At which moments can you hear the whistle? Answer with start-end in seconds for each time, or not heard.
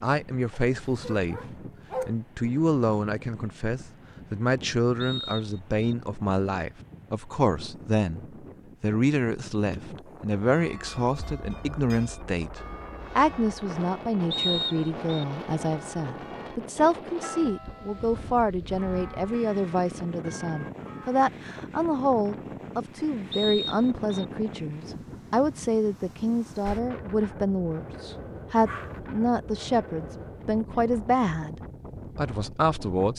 5.0-5.9, 14.3-15.2, 23.3-24.2.